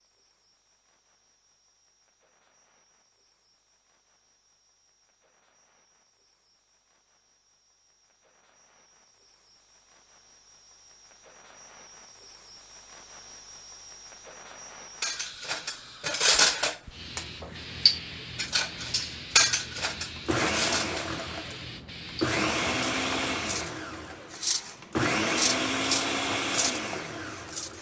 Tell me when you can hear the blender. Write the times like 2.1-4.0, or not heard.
20.1-27.7.